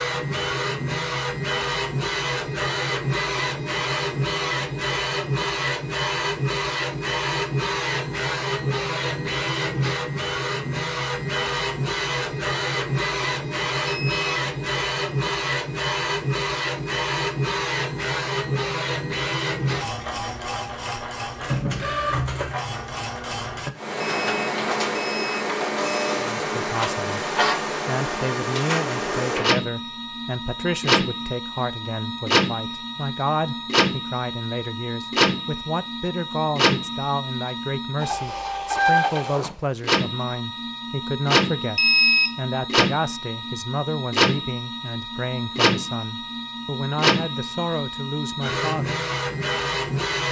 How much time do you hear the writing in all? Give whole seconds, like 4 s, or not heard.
not heard.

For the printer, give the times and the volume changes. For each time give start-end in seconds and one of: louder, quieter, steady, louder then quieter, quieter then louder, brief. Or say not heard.
0.0-50.2 steady.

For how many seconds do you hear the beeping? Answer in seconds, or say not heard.
3 s.